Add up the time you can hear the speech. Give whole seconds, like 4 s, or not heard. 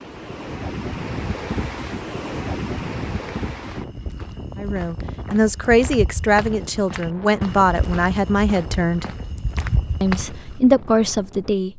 6 s.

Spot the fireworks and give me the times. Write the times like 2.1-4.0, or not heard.
not heard.